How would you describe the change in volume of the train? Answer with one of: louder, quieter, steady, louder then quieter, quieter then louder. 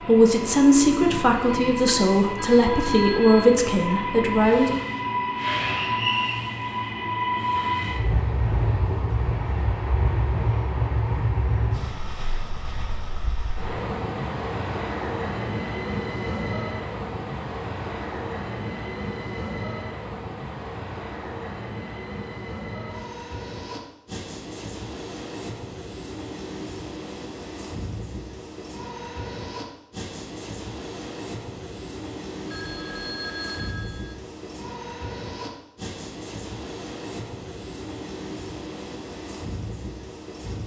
quieter.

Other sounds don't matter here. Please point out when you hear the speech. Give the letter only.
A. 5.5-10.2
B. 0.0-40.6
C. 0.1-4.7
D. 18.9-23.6
C.